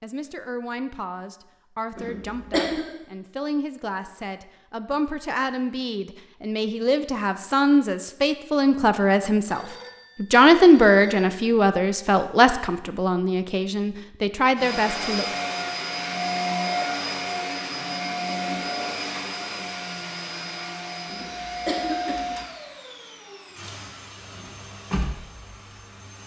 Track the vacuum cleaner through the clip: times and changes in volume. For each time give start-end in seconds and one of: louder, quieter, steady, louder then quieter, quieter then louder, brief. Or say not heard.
14.6-26.2 quieter.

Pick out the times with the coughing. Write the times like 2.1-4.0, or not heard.
1.9-2.9, 21.1-22.4.